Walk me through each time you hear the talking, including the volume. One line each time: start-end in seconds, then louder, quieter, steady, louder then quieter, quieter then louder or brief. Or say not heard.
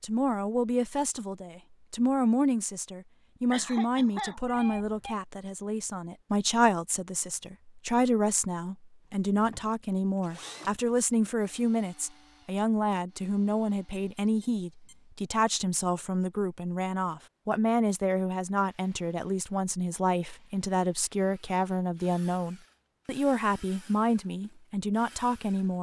0.0-25.7 steady.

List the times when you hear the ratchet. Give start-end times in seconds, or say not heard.
not heard.